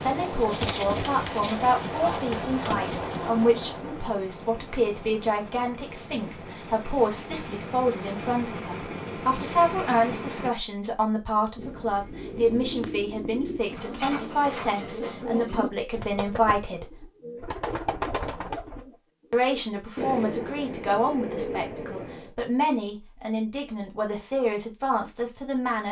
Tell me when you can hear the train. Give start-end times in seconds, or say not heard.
0.0-10.5.